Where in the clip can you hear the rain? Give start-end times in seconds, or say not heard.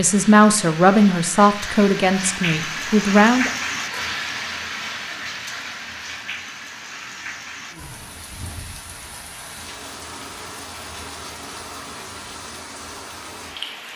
0.0-13.9.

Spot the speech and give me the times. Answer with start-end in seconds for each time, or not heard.
0.0-3.5.